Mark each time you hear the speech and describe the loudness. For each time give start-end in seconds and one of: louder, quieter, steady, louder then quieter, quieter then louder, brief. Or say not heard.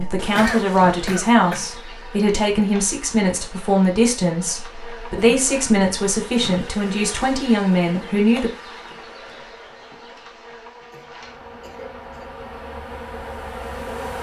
0.0-8.5 steady.